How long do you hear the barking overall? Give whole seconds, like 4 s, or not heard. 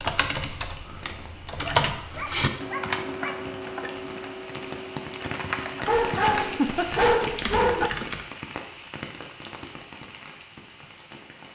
4 s.